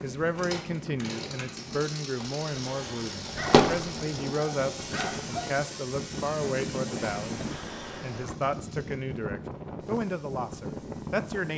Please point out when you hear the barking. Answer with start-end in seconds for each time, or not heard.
3.2-5.5.